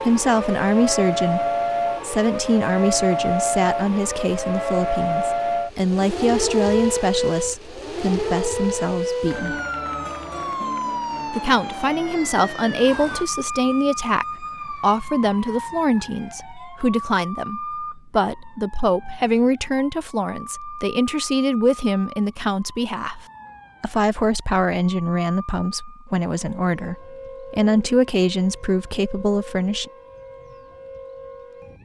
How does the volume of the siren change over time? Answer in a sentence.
The loudness of the siren goes down.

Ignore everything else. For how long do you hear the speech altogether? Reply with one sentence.
You can hear the speech for 28 seconds altogether.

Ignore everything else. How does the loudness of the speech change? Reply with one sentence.
The volume of the speech stays about the same.